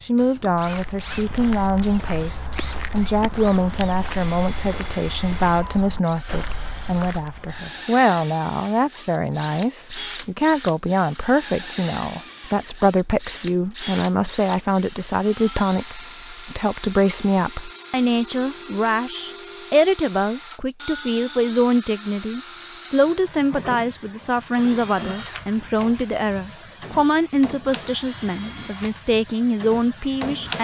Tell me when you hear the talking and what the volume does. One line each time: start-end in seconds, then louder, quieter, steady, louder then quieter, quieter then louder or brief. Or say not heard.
0.0-30.5 steady.